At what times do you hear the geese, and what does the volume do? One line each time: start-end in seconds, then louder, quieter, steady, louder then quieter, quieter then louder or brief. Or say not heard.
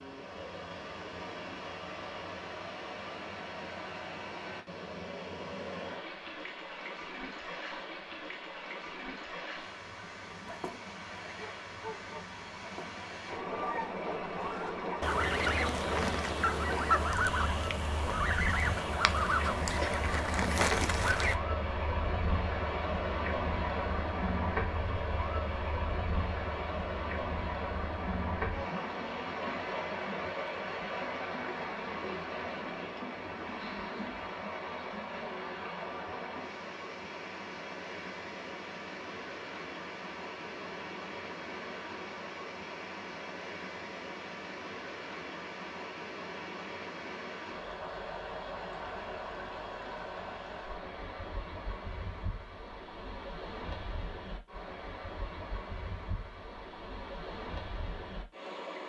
10.2-21.4 louder.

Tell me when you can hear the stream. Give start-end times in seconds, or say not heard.
0.0-58.8.